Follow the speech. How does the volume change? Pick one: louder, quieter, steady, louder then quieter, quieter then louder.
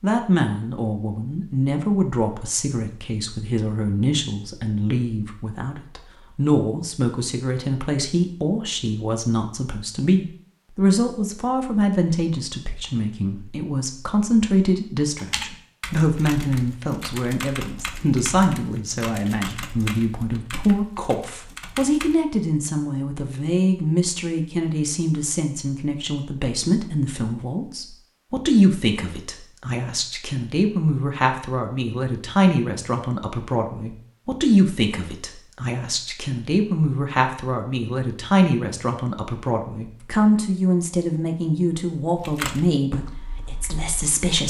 steady.